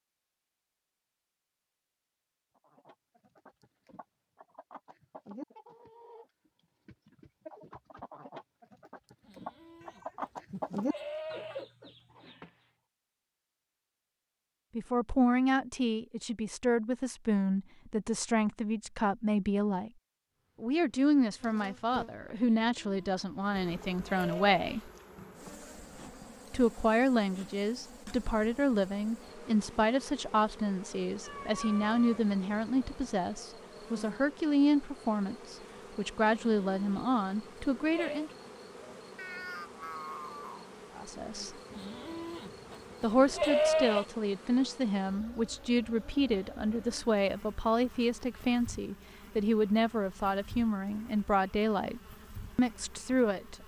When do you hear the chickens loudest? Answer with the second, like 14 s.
11 s.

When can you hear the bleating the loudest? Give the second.
44 s.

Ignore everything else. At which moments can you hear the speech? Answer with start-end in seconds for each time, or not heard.
14.8-19.9, 20.6-24.9, 26.5-38.3, 41.0-41.5, 43.0-53.5.